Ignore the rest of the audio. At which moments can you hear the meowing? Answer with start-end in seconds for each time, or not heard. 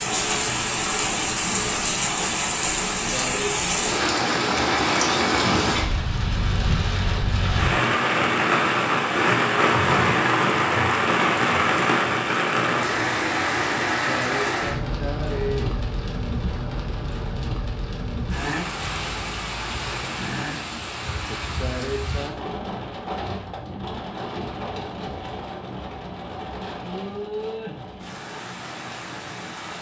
not heard.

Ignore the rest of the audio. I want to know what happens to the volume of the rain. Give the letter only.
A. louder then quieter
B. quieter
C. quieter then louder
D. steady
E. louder
B.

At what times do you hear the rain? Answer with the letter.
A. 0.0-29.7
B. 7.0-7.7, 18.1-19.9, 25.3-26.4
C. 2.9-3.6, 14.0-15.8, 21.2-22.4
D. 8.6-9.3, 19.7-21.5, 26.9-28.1
A.